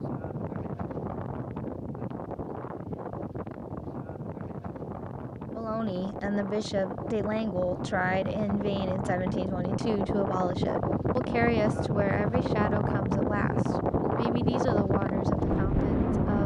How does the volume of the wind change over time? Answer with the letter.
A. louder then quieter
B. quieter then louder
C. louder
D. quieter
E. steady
C.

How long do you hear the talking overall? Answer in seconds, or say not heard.
11 s.